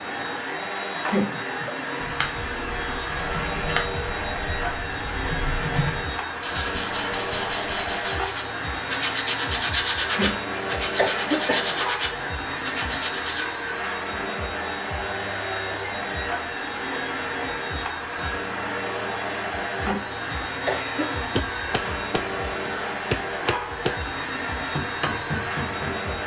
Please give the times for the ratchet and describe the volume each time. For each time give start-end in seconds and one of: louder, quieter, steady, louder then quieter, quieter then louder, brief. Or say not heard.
not heard.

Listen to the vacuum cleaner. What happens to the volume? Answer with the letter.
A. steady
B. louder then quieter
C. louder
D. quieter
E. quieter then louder
A.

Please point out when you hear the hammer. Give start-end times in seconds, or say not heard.
21.4-26.2.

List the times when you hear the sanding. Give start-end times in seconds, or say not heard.
2.0-13.4.